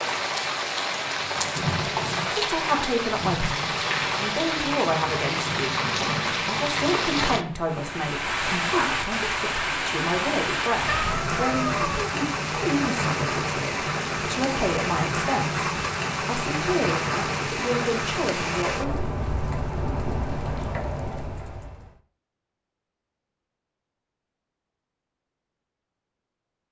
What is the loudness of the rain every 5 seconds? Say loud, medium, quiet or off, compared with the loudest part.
loud, loud, loud, loud, medium, off.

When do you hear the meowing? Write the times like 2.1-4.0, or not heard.
10.8-12.1.